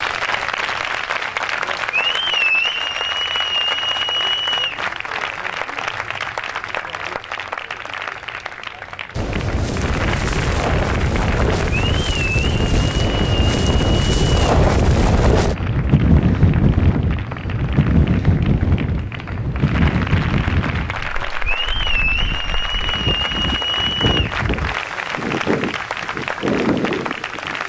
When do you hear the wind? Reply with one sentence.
You can hear the wind from 9.2 to 27.6 s.